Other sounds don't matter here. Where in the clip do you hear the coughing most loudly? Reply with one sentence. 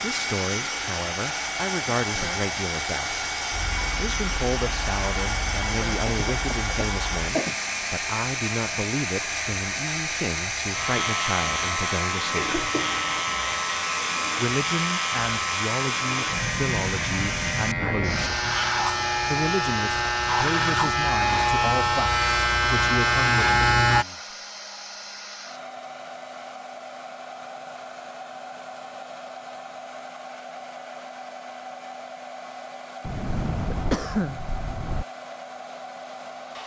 The volume of the coughing peaks at 34 seconds.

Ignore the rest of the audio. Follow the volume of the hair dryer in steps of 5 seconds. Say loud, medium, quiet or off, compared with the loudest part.
loud, loud, loud, loud, medium, medium, medium, medium.